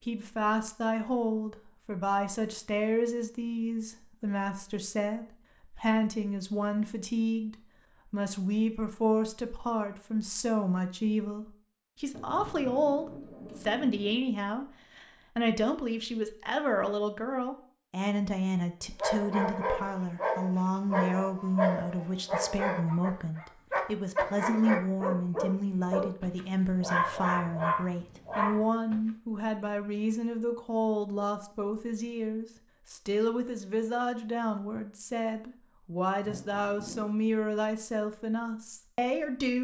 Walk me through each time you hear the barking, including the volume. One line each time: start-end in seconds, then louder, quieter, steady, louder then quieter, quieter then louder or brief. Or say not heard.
19.0-29.0 steady.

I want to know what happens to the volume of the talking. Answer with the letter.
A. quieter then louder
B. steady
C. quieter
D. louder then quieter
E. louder
B.